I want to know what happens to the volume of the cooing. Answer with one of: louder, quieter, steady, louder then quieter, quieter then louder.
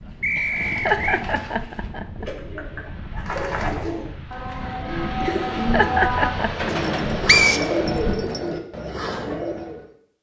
louder.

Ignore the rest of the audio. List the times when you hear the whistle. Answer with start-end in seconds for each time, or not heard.
0.2-1.2, 7.2-8.4.